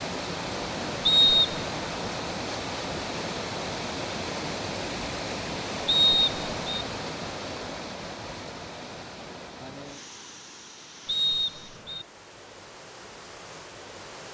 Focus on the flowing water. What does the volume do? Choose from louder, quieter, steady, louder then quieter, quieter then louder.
quieter.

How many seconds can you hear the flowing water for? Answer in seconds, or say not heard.
14 s.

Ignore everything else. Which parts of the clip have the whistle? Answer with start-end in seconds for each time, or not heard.
1.1-1.6, 5.8-6.8, 11.1-12.1.